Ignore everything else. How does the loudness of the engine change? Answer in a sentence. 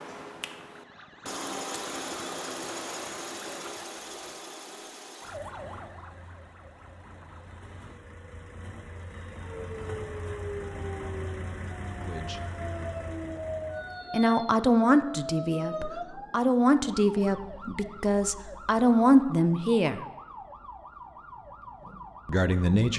The volume of the engine goes down, then up.